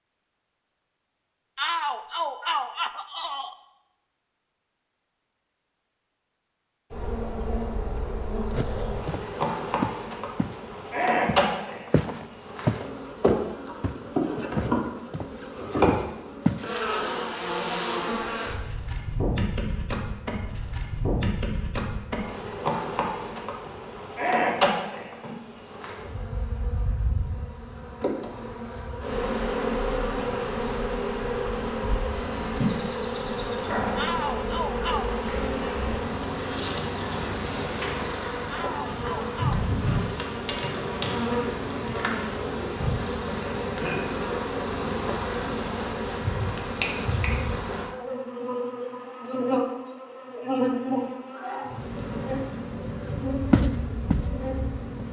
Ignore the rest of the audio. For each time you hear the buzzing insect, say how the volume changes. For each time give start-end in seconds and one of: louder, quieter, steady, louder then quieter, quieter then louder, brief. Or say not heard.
6.9-55.0 steady.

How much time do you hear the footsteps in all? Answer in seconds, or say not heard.
9 s.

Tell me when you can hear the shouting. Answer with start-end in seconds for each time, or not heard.
1.6-3.5, 34.0-35.1, 38.5-39.6.